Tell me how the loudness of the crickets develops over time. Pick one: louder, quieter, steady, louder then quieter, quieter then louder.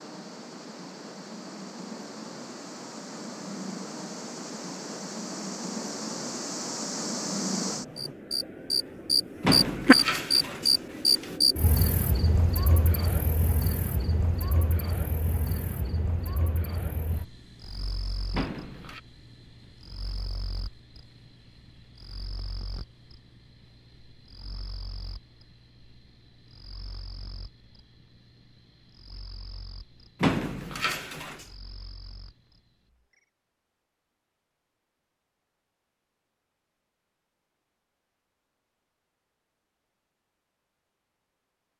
louder then quieter.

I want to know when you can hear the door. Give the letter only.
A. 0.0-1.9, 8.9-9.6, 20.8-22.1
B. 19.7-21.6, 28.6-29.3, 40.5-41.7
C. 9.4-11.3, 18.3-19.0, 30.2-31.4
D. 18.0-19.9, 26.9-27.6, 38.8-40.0
C.